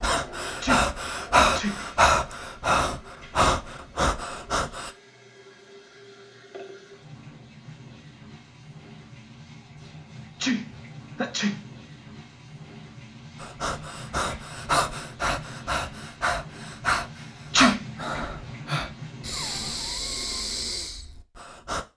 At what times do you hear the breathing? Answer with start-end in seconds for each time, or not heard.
0.0-4.9, 13.4-21.9.